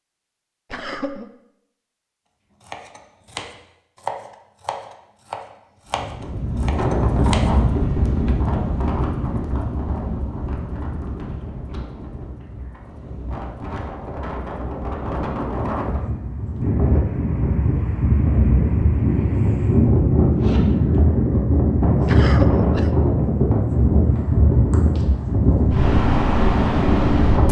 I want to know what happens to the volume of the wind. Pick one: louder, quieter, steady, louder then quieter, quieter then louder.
quieter then louder.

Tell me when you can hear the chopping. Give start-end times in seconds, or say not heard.
2.6-8.4.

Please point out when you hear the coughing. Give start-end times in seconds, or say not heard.
0.7-1.2, 22.1-22.9.